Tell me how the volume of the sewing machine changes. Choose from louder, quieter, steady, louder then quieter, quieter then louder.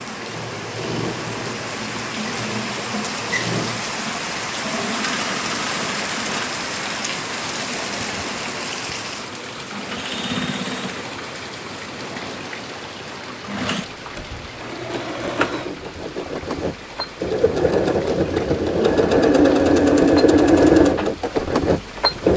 louder.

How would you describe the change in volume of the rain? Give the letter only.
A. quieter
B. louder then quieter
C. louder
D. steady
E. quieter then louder
A.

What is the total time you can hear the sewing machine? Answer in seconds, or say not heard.
22 s.